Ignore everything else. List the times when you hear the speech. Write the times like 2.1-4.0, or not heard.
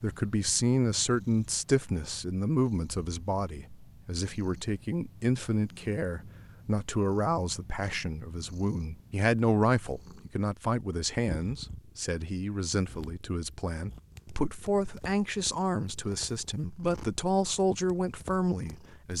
0.0-19.1.